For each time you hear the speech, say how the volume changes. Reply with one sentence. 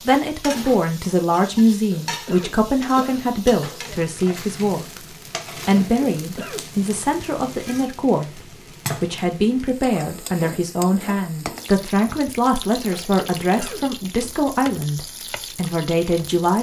The speech can be heard from 0.0 to 16.5 s, at a steady volume.